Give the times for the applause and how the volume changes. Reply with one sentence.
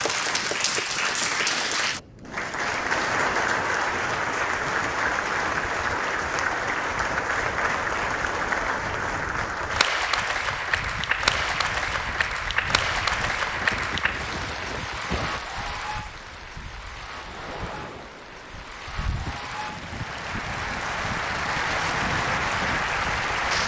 You can hear the applause from 0.0 to 23.6 s, getting quieter then louder.